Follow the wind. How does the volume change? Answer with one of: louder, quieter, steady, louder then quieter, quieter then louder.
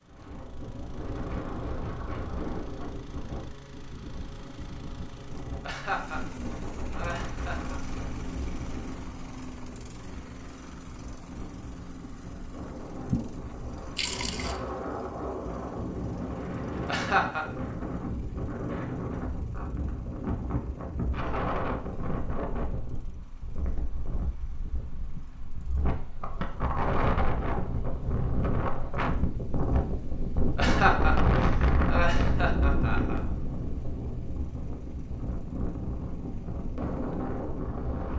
louder.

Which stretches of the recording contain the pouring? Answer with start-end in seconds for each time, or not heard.
12.9-14.6.